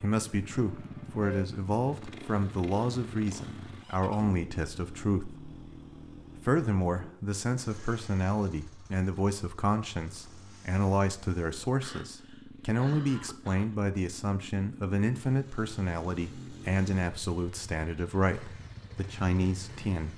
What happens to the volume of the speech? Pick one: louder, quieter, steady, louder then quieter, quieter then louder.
steady.